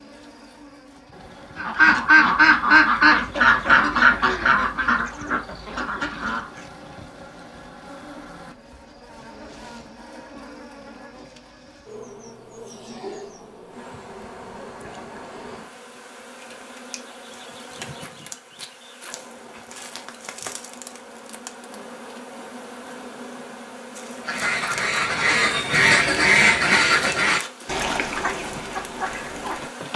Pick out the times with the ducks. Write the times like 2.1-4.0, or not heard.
1.6-6.5, 24.1-29.7.